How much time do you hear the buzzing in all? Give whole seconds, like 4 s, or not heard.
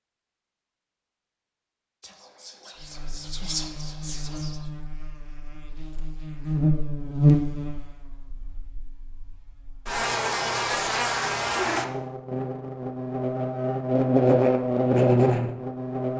13 s.